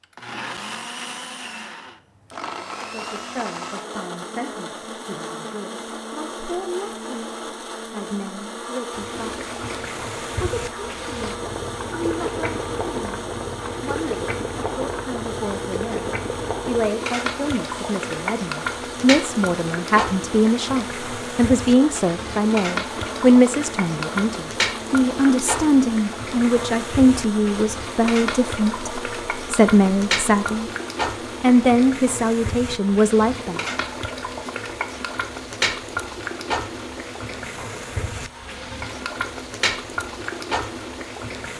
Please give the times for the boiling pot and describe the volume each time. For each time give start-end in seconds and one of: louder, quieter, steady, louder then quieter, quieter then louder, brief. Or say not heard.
8.9-41.5 steady.